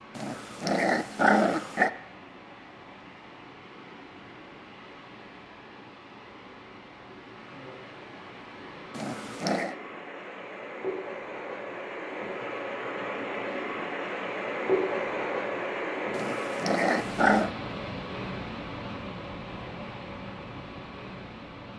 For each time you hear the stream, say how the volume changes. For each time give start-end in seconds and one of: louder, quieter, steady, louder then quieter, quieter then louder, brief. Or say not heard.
0.0-21.7 louder then quieter.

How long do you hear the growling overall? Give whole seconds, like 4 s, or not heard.
4 s.